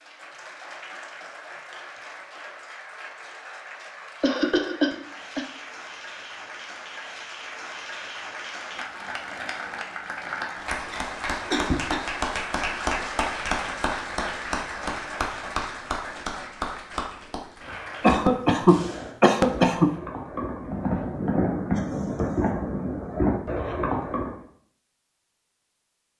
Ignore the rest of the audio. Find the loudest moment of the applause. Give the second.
13 s.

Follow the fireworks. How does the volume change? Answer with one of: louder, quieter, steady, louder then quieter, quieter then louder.
louder.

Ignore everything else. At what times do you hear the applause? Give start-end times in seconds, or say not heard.
0.0-18.4.